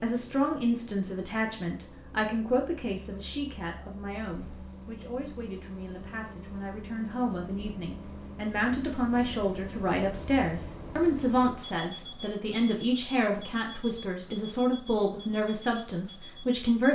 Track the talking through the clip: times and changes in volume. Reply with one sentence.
The talking can be heard from 0.0 to 16.8 s, getting quieter then louder.